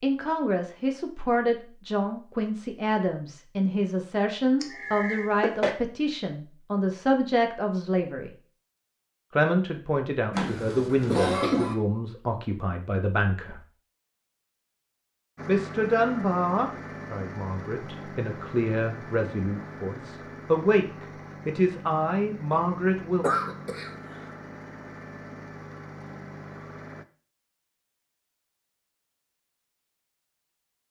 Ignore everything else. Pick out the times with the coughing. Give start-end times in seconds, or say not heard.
4.6-5.8, 10.3-11.8, 23.2-24.2.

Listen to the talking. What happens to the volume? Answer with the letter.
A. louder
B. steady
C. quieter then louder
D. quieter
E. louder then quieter
B.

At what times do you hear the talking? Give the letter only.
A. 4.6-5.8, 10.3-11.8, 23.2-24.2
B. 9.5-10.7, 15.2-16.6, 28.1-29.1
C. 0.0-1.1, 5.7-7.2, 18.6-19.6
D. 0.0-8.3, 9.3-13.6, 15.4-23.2
D.